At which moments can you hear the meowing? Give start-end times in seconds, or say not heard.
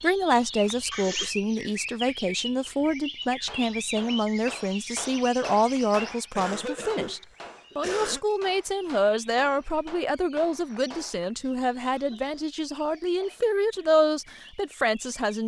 not heard.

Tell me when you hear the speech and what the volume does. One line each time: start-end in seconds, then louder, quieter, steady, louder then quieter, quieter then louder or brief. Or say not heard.
0.0-15.4 steady.